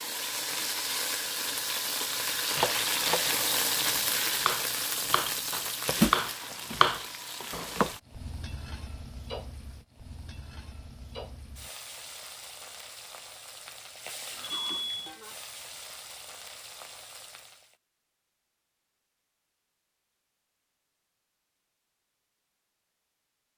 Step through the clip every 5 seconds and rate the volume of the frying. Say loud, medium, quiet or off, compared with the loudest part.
loud, loud, quiet, quiet, off.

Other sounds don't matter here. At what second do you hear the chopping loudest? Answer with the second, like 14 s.
7 s.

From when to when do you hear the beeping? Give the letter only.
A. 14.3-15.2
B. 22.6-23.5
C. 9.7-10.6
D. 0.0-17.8
A.